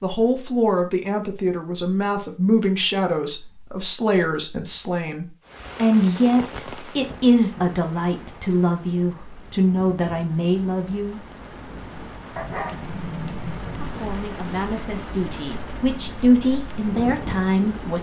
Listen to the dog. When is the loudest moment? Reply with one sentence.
The loudest moment of the dog is at 13 seconds.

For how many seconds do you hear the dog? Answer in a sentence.
You can hear the dog for 2 seconds altogether.